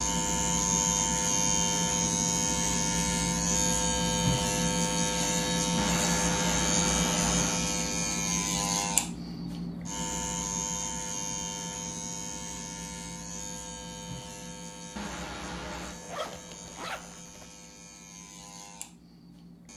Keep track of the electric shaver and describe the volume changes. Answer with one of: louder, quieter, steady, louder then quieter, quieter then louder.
quieter.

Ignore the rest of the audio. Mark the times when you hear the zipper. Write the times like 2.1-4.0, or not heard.
15.8-17.4.